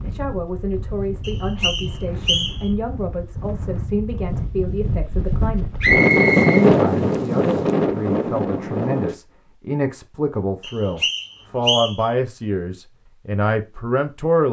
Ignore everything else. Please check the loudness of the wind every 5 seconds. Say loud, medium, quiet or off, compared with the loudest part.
quiet, loud, off.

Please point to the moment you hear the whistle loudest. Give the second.
6 s.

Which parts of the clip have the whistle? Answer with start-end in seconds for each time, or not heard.
1.2-2.6, 5.8-6.7, 10.6-12.1.